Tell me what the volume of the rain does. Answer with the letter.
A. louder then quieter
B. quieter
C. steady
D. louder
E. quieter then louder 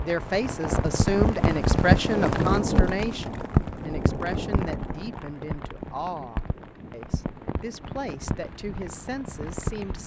B.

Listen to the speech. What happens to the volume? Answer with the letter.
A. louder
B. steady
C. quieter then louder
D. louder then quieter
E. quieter
E.